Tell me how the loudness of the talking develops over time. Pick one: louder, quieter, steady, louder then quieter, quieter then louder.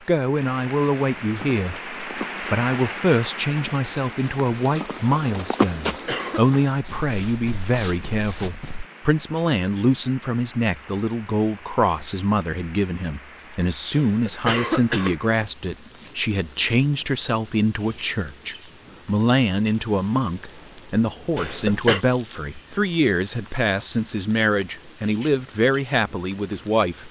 steady.